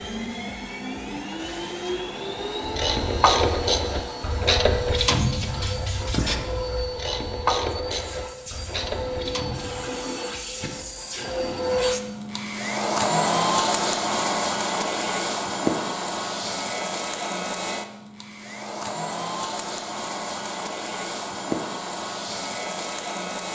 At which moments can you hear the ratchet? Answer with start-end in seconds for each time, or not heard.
2.6-9.9.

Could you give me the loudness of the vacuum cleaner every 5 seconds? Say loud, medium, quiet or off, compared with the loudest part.
medium, medium, loud, loud, medium.